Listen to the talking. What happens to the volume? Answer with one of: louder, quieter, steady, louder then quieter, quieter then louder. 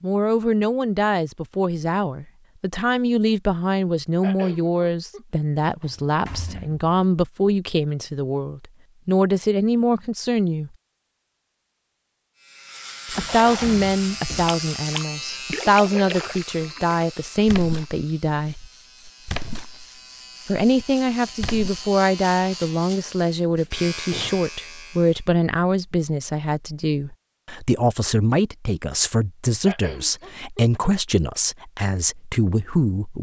steady.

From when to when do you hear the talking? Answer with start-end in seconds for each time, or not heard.
0.0-10.7, 13.1-18.6, 20.4-33.1.